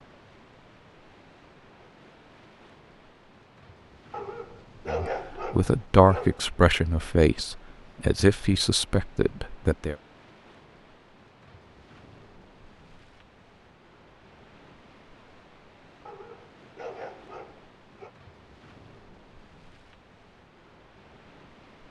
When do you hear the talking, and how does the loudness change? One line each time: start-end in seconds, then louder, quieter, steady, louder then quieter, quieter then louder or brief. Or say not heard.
4.8-9.9 quieter.